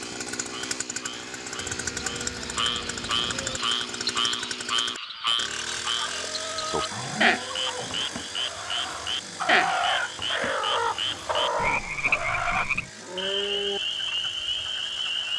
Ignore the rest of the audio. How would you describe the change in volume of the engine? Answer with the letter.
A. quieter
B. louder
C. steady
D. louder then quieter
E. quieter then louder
A.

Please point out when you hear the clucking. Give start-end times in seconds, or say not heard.
5.8-12.7.